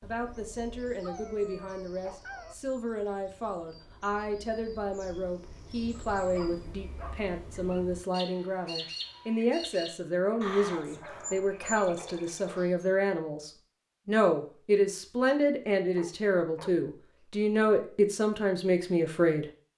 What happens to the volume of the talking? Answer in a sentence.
The loudness of the talking goes up.